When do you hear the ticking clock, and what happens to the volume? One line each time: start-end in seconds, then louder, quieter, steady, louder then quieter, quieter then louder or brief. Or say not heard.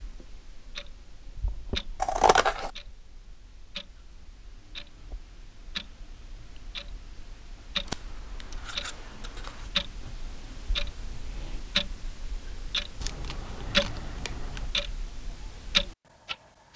0.0-16.7 louder.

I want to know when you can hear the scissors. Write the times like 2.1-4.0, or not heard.
2.0-2.7, 7.8-9.7, 13.0-14.7.